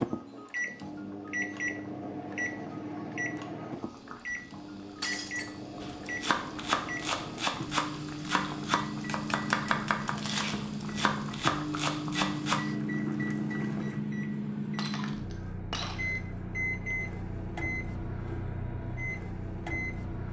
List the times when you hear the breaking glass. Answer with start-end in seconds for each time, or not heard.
5.0-5.5, 14.8-16.2.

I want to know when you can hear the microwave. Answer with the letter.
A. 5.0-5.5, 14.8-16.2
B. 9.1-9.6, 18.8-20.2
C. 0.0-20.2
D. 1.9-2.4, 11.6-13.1
C.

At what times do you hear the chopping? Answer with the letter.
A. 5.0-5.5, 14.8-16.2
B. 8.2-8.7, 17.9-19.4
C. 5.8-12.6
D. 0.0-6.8
C.